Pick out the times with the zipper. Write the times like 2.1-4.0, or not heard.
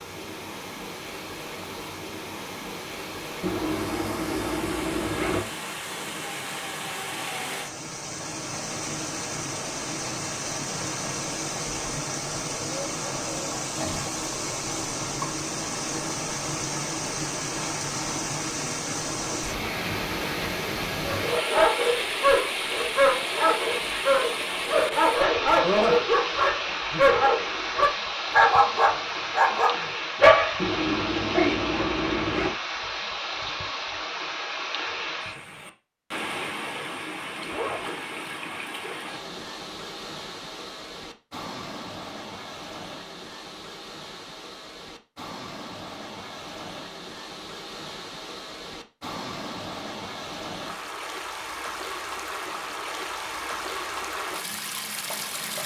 3.4-5.5, 30.6-32.5, 37.5-37.9.